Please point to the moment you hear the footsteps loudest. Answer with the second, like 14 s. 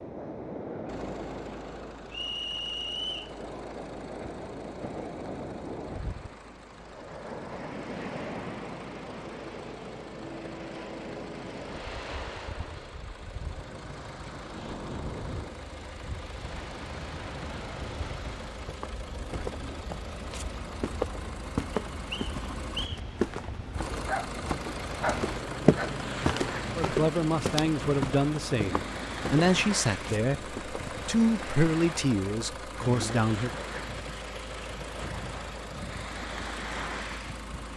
26 s.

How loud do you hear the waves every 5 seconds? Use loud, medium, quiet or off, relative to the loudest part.
loud, loud, loud, loud, medium, loud, loud, loud.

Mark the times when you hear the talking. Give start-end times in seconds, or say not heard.
26.8-33.5.